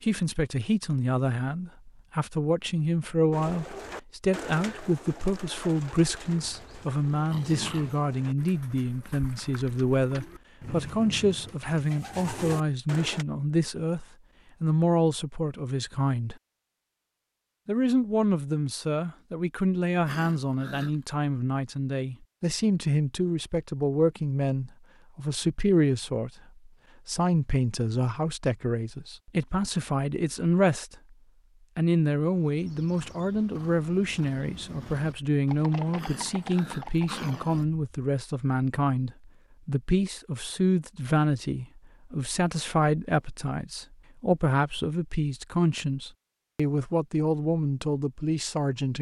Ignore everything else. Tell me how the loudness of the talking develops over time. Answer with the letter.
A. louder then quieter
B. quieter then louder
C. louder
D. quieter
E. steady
E.